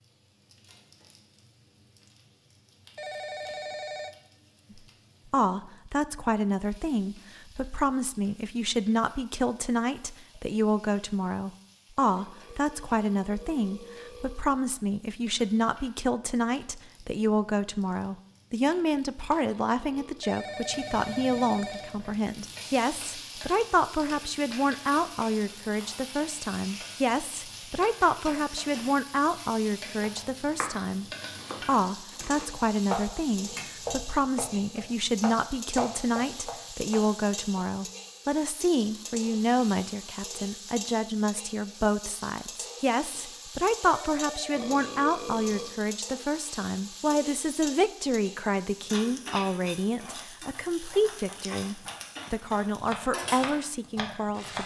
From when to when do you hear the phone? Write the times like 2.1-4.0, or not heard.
3.0-4.2, 20.2-22.0, 43.9-44.9.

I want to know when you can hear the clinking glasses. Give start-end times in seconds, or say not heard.
not heard.